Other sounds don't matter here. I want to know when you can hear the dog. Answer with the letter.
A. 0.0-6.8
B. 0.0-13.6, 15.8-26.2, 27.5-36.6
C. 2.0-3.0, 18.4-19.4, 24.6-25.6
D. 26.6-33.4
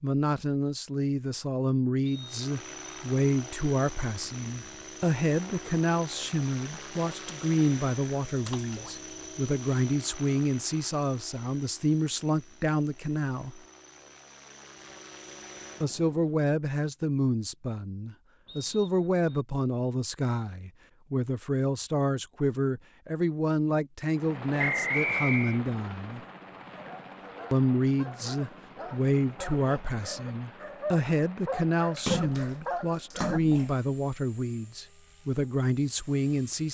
D.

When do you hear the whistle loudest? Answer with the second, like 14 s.
25 s.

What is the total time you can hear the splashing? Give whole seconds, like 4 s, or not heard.
2 s.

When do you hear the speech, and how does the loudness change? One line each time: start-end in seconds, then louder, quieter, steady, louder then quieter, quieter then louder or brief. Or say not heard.
0.0-13.6 steady
15.8-26.2 steady
27.5-36.6 steady.